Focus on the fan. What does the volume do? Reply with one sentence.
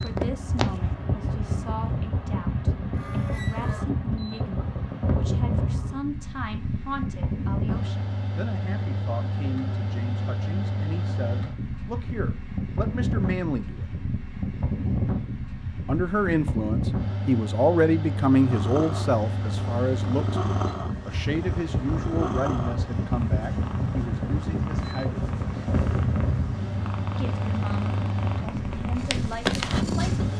The loudness of the fan stays about the same.